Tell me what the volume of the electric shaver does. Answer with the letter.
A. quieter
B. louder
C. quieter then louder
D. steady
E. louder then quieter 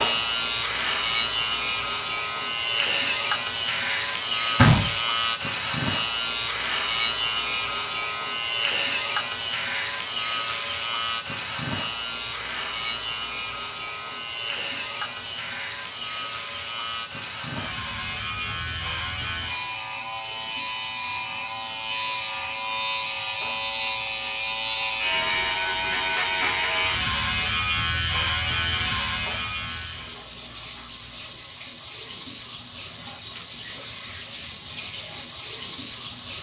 C.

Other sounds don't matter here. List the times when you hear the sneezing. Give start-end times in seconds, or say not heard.
not heard.